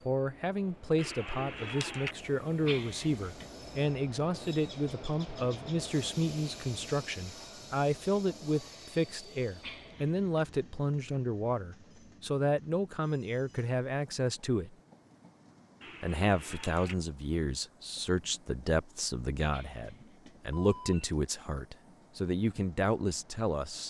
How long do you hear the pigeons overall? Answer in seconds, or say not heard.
2 s.